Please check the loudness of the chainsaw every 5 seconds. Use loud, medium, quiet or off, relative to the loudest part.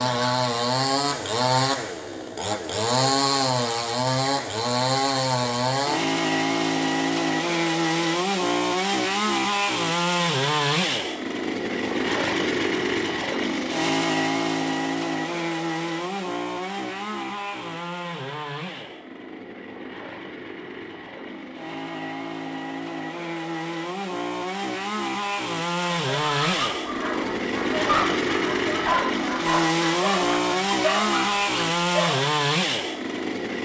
loud, loud, loud, medium, medium, loud, loud.